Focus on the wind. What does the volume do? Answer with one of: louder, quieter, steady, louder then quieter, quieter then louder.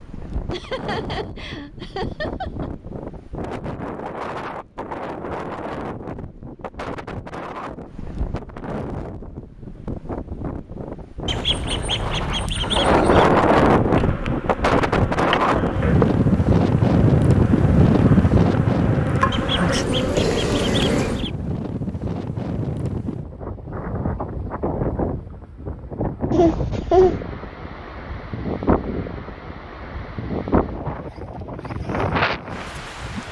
louder then quieter.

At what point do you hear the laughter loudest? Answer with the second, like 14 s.
27 s.